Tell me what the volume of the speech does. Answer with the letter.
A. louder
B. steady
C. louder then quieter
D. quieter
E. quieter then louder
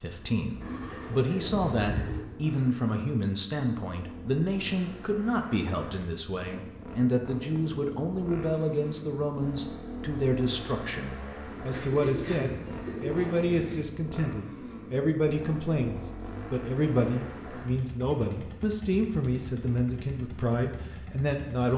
B.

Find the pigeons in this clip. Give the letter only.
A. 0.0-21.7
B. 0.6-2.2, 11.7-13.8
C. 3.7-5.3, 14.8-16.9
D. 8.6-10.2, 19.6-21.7
B.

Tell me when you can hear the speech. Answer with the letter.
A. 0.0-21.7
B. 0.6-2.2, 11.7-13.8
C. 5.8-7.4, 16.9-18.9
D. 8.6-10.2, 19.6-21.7
A.